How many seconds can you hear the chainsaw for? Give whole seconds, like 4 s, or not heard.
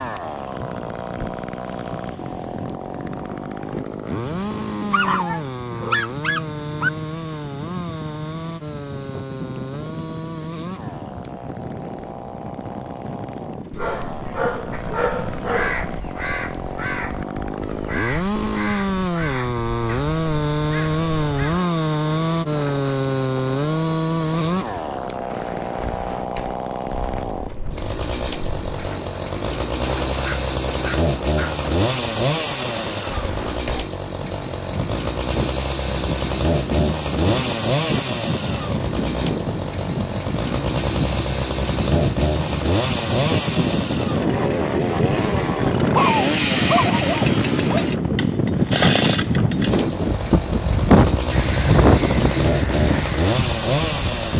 54 s.